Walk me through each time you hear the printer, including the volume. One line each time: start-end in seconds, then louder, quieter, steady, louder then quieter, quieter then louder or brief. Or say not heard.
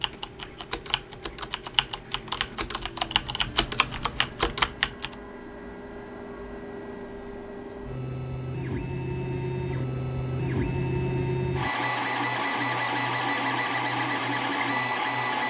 0.0-15.4 louder.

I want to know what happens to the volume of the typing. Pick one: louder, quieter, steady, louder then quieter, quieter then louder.
louder.